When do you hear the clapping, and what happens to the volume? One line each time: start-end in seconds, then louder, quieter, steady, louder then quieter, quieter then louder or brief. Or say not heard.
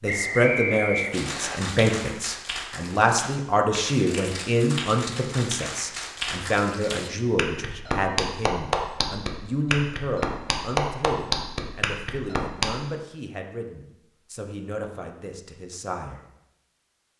1.1-12.7 louder.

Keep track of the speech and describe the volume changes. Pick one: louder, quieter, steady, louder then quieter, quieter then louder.
quieter.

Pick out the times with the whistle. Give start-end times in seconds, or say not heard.
0.1-1.6.